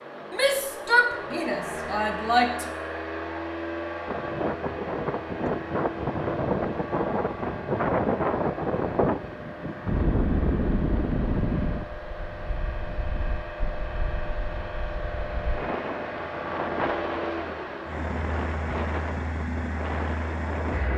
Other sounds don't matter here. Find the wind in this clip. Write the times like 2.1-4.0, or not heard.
4.0-20.9.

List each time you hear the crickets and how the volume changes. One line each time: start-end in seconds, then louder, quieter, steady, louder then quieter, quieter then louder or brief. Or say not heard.
not heard.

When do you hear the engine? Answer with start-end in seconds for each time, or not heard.
0.0-20.9.